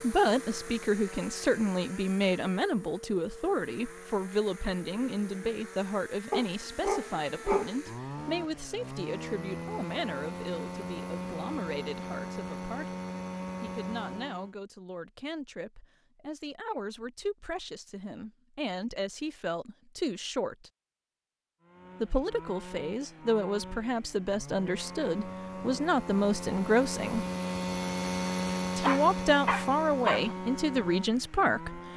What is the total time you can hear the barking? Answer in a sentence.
The barking can be heard for 3 seconds in total.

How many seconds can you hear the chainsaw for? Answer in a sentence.
The chainsaw can be heard for 25 seconds in total.